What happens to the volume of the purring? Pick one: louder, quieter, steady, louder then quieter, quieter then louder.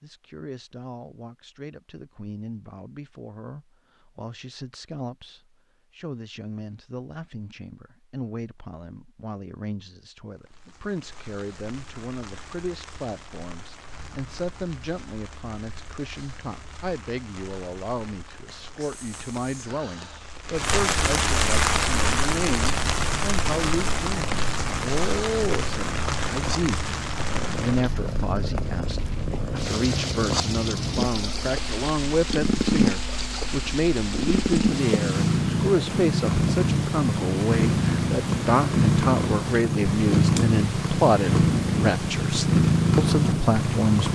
louder.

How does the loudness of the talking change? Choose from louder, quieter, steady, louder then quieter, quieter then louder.
louder.